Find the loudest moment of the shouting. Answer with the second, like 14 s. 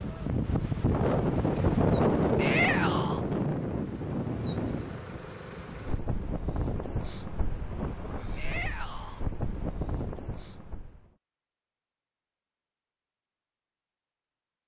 3 s.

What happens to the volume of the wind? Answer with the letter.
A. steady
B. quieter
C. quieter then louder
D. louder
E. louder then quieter
B.